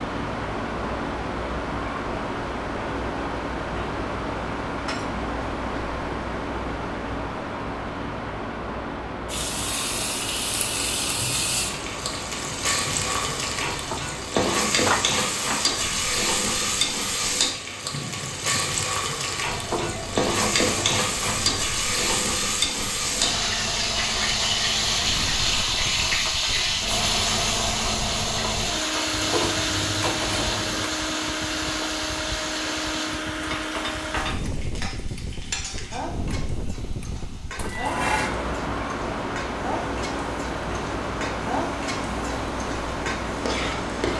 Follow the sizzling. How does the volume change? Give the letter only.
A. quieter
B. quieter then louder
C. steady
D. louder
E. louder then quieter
A.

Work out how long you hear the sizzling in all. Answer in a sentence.
You can hear the sizzling for 35 seconds altogether.